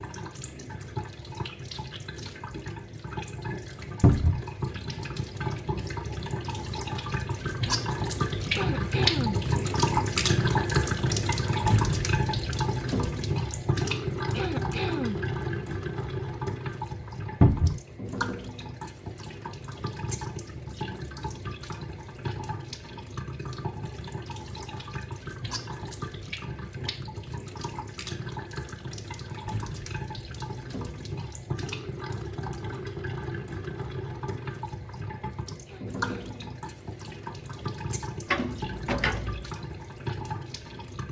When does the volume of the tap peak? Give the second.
10 s.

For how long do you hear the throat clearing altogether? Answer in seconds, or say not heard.
3 s.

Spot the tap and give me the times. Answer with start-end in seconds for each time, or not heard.
0.0-41.0.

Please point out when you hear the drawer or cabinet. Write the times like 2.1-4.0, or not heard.
4.0-4.5, 17.4-17.8, 38.3-39.5.